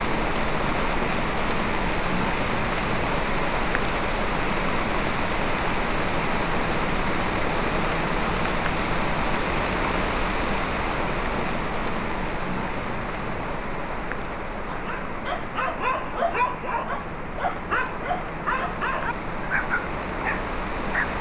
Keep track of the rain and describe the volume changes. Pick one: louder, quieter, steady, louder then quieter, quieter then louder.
quieter.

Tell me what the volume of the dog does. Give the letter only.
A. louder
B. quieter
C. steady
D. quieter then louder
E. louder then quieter
C.